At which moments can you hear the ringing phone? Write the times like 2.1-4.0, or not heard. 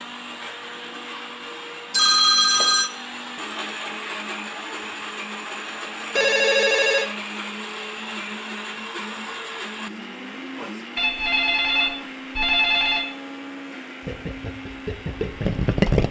1.9-2.9, 6.2-7.1, 10.9-13.1.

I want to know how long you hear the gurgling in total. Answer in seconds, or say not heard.
2 s.